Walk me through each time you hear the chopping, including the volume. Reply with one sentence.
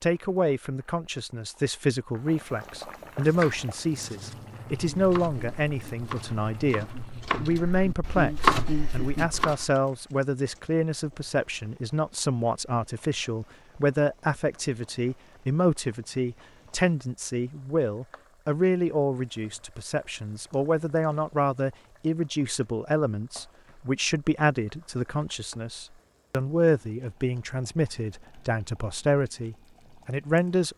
The chopping can be heard from 3.2 to 9.7 s, getting louder.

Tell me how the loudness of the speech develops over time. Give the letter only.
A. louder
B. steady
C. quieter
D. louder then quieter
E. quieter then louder
B.